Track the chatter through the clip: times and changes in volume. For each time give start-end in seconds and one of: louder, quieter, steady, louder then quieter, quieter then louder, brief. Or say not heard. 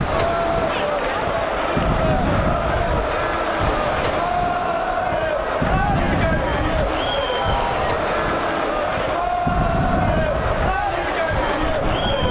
0.0-12.2 steady.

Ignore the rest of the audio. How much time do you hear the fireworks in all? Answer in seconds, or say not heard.
not heard.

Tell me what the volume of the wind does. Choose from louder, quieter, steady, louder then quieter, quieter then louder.
steady.